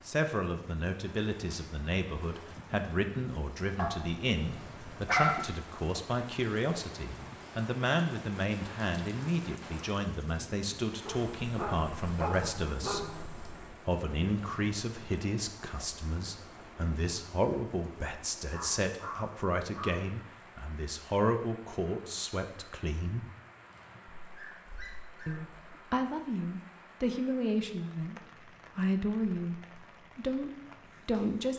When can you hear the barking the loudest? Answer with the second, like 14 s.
5 s.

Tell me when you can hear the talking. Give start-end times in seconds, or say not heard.
0.1-13.1, 13.8-23.2, 25.2-31.5.